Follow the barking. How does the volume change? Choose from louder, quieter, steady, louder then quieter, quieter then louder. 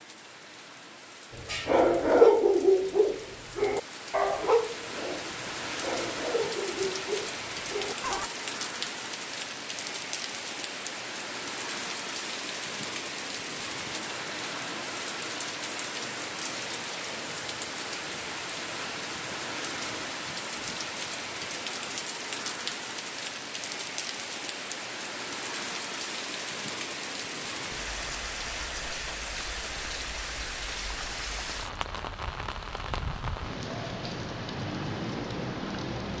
quieter.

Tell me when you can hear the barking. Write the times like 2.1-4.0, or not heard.
1.4-8.3.